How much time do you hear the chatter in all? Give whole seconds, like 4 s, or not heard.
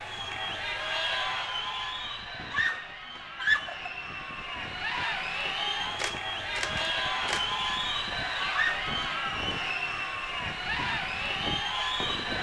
12 s.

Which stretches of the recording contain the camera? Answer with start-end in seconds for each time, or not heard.
6.0-7.5.